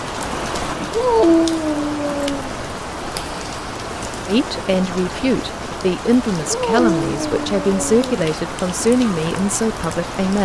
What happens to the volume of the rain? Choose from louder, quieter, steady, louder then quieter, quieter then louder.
steady.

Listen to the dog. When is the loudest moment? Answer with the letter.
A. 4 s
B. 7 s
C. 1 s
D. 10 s
C.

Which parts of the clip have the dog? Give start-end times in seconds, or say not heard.
0.9-2.5, 6.5-8.1.